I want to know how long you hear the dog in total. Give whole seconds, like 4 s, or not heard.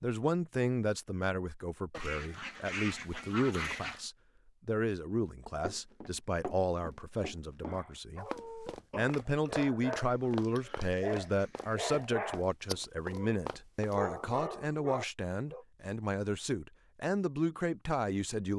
8 s.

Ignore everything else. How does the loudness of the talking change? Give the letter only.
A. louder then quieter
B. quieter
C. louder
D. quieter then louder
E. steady
E.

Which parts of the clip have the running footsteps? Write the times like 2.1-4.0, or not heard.
5.7-14.4.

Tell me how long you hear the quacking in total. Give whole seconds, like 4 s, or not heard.
4 s.